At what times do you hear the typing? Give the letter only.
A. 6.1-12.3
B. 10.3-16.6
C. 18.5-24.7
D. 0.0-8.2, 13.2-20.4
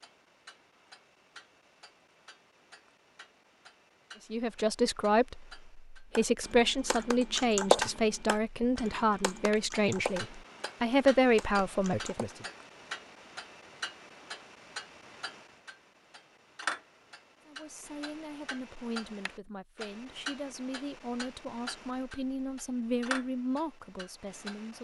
A.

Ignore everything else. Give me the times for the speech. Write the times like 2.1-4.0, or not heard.
4.3-12.4, 17.4-24.7.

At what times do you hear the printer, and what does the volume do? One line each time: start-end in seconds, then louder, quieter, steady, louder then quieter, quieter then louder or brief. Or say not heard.
not heard.